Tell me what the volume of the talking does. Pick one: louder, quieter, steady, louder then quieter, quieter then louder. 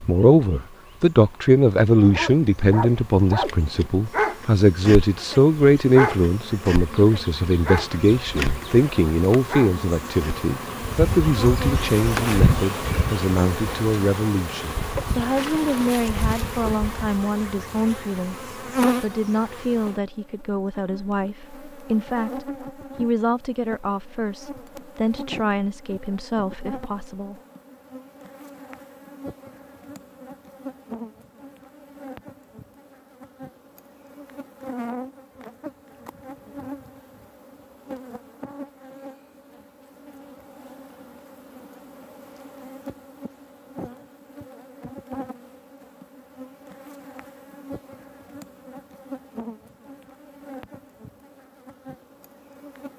quieter.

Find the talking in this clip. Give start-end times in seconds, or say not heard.
0.1-27.4.